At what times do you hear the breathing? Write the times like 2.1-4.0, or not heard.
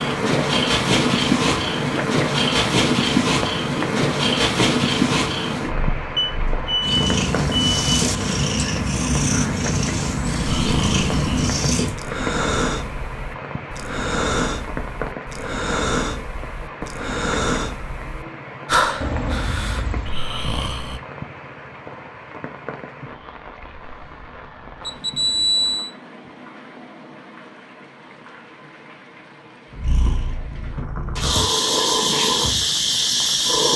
10.4-21.0.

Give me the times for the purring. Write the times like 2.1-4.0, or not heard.
0.0-11.9, 29.7-33.7.